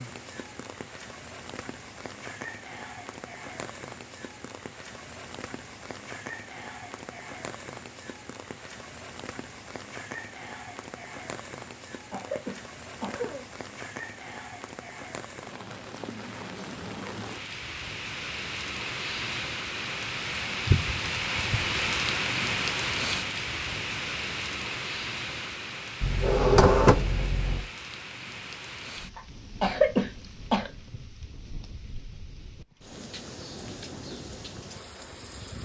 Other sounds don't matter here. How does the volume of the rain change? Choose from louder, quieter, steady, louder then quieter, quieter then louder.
louder then quieter.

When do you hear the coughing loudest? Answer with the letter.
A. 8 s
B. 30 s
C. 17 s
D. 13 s
B.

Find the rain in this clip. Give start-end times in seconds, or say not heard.
0.0-35.5.